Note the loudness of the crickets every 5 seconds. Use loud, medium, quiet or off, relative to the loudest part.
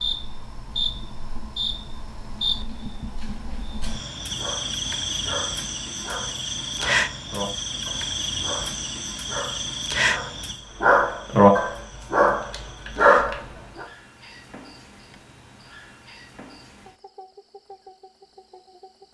loud, loud, medium, quiet.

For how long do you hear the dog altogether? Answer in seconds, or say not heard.
10 s.